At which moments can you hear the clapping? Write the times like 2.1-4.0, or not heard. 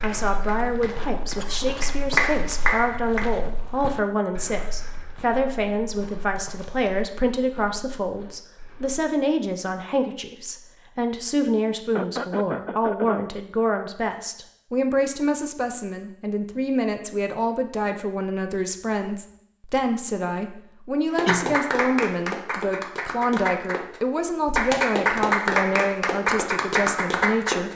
0.0-3.3, 21.1-27.7.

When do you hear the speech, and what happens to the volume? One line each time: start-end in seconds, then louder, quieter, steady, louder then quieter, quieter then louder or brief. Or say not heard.
0.0-27.7 steady.